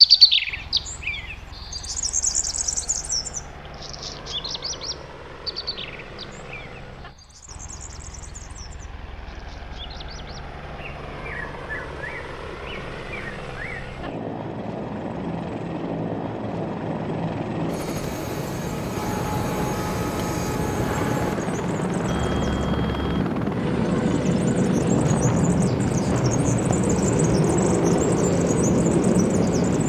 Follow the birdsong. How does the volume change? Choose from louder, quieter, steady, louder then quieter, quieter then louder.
quieter then louder.